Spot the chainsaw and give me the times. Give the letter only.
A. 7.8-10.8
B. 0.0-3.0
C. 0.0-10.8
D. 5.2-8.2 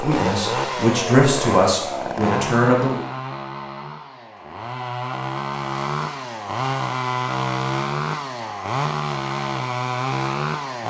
C.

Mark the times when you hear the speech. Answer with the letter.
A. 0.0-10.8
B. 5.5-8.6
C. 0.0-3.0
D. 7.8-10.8
C.